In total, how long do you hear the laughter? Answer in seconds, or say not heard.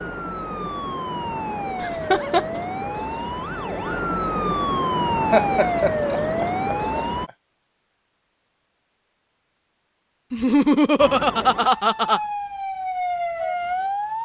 4 s.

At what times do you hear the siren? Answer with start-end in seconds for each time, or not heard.
0.0-7.3, 11.0-14.2.